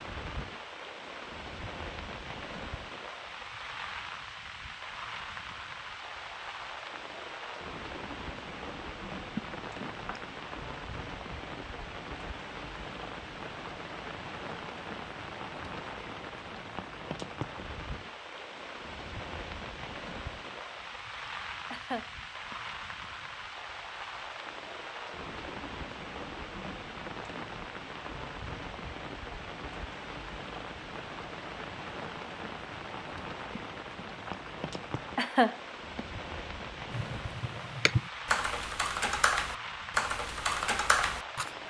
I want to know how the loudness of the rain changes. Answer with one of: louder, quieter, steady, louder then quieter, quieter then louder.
steady.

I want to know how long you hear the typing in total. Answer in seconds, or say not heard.
5 s.